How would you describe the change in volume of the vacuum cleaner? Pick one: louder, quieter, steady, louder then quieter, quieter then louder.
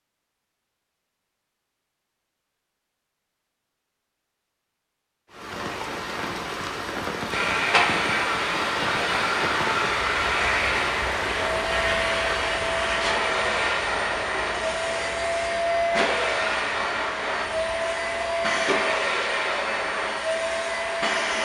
steady.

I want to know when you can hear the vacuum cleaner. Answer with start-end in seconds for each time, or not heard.
7.3-21.4.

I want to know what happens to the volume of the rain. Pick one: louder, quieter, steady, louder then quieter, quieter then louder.
quieter.